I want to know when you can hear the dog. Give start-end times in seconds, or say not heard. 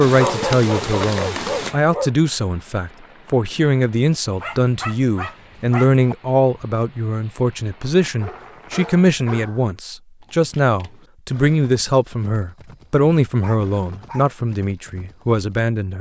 0.1-2.1, 4.3-6.2, 8.2-9.7, 13.4-14.3.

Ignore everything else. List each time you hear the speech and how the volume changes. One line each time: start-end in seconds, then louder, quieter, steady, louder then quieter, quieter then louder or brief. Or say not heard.
0.0-15.9 steady.